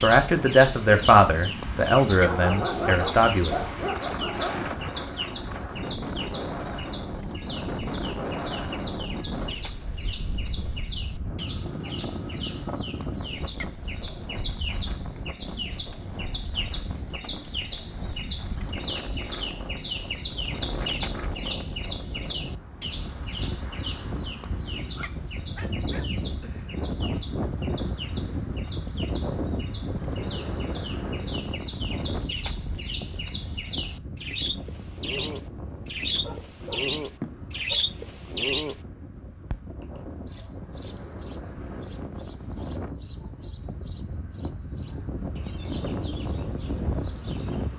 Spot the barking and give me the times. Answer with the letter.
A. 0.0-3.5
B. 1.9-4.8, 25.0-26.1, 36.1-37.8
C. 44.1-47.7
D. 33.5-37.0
B.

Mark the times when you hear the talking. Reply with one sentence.
You can hear the talking from 0.0 to 3.5 s.